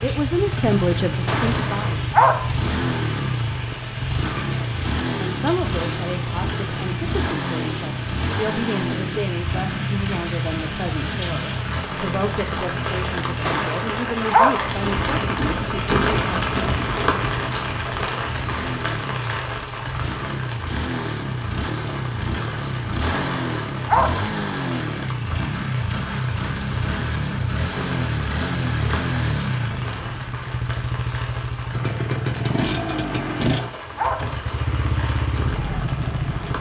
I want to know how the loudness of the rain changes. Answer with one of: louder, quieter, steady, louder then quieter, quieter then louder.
louder then quieter.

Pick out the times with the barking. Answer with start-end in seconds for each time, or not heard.
1.2-2.5, 13.4-14.7, 23.0-24.2, 33.1-34.4.